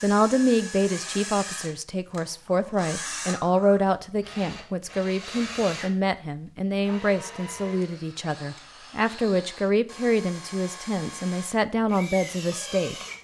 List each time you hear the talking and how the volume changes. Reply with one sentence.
The talking can be heard from 0.0 to 12.9 s, at a steady volume.